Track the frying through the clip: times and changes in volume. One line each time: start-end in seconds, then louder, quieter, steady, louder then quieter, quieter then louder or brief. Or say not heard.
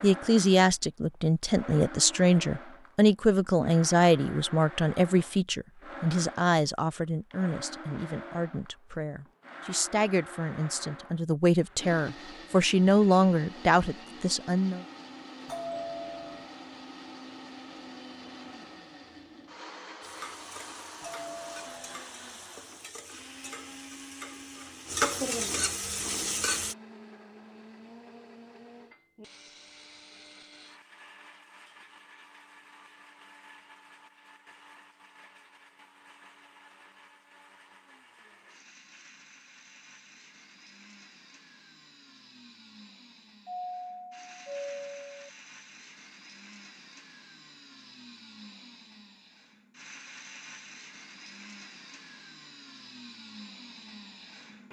20.0-26.8 louder.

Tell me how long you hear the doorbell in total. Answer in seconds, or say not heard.
4 s.